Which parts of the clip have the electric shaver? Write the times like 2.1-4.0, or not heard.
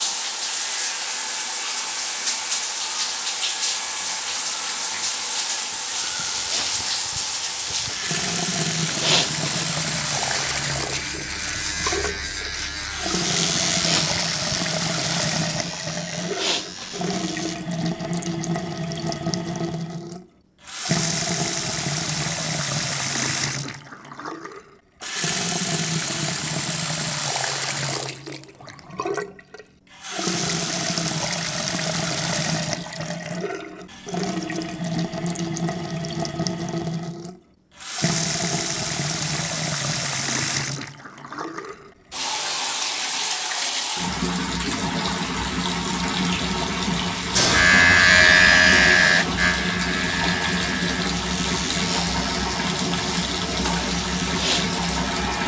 0.1-17.6, 47.4-55.4.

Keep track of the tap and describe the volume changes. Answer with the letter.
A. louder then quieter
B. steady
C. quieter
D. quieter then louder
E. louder
B.